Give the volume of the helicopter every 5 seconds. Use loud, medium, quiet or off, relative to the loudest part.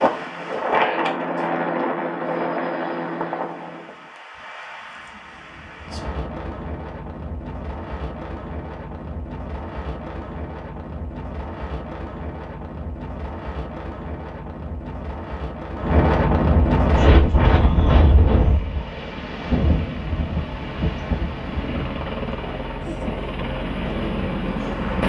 loud, off, off, medium, loud.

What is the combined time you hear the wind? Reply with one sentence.
The wind can be heard for 25 seconds in total.